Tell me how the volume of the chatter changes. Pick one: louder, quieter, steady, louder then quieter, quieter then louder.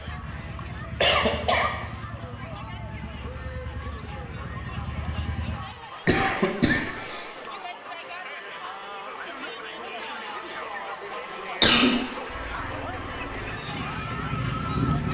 louder.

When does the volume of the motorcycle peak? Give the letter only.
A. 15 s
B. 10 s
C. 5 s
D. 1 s
A.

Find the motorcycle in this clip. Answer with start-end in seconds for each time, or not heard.
0.0-5.6, 12.2-15.0.